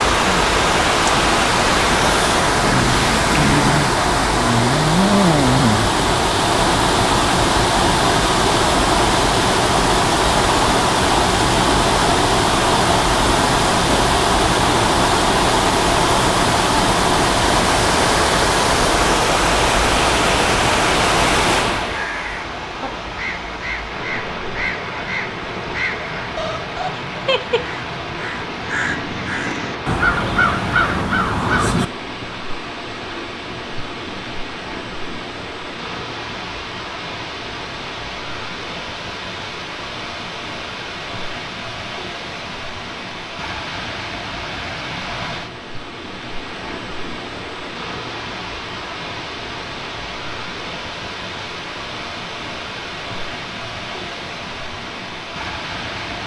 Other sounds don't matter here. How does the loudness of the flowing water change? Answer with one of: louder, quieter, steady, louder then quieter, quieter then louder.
quieter.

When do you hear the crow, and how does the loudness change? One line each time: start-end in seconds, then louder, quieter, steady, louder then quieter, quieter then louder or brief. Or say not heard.
21.9-31.9 louder.